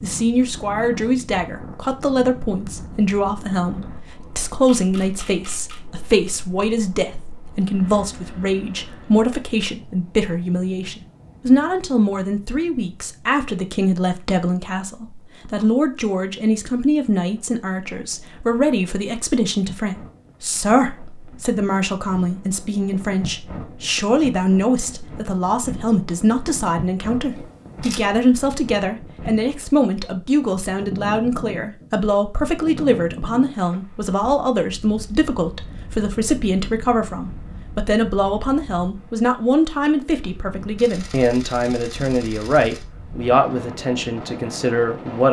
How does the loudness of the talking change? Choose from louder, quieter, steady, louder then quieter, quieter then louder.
steady.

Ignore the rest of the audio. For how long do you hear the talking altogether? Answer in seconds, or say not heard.
45 s.